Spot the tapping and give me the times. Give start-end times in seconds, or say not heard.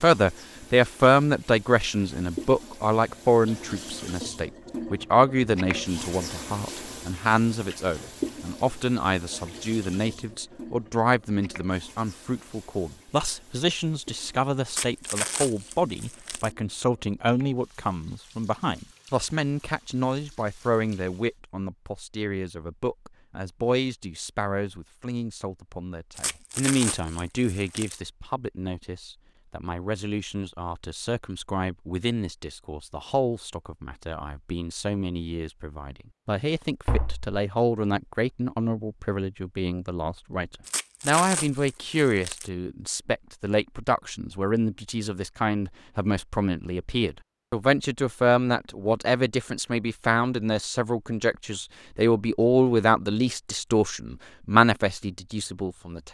36.9-37.4.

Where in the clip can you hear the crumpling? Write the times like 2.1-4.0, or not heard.
14.7-16.5, 26.1-28.0, 40.6-42.5.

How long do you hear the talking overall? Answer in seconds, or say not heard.
56 s.